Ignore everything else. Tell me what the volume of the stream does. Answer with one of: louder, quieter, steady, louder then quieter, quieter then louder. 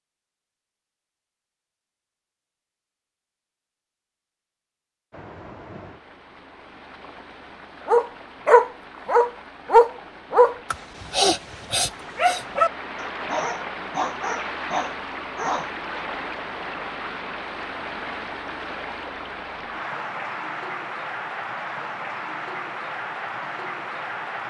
louder.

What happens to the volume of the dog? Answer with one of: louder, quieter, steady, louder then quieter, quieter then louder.
quieter.